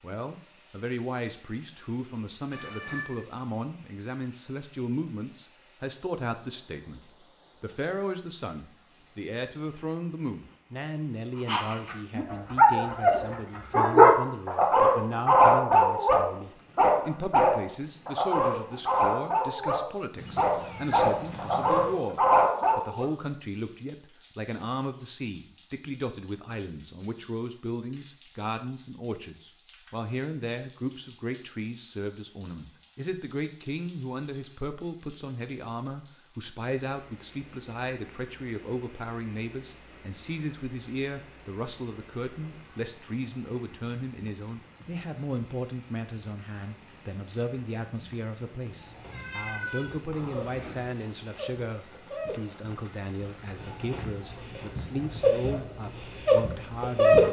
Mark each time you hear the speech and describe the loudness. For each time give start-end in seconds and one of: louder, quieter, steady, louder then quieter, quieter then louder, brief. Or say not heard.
0.0-57.2 steady.